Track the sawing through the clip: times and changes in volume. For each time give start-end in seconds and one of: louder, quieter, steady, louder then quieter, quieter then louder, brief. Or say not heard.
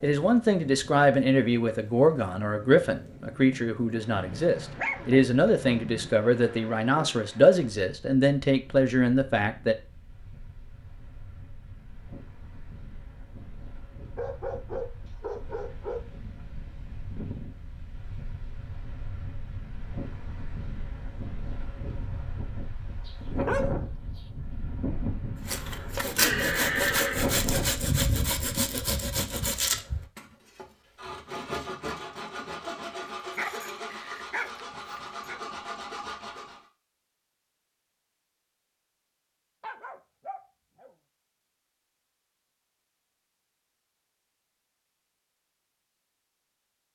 25.4-36.6 quieter.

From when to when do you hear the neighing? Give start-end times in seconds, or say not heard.
26.1-27.4.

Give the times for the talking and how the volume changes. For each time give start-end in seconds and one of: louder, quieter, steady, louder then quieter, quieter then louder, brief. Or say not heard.
0.0-9.8 steady.